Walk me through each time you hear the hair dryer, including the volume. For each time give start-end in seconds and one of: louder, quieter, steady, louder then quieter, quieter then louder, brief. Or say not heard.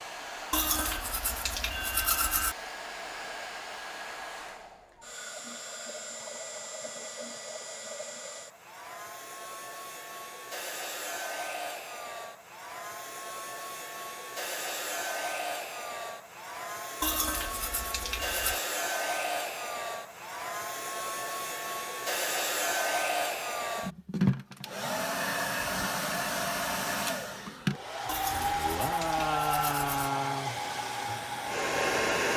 0.0-32.3 louder.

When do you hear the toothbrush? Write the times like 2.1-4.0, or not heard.
0.5-2.5, 17.0-18.6, 28.1-30.1.